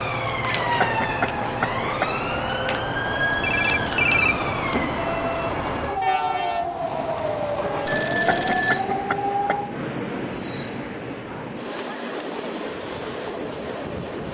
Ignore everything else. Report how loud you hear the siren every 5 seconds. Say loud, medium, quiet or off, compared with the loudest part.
loud, loud, off.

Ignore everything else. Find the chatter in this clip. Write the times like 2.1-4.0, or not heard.
not heard.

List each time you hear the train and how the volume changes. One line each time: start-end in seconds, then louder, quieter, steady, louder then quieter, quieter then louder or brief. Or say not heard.
0.0-14.2 steady.